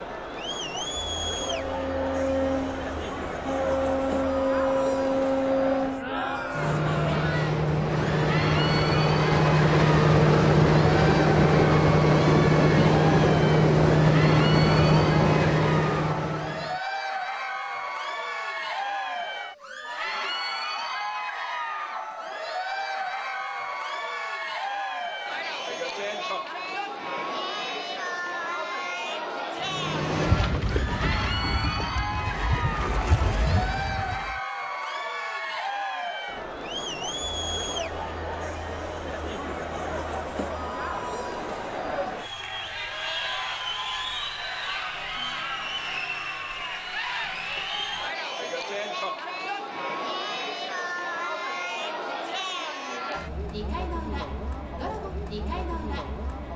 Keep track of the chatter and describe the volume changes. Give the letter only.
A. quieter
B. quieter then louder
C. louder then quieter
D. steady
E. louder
D.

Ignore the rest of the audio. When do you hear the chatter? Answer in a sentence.
You can hear the chatter from 0.0 to 56.5 s.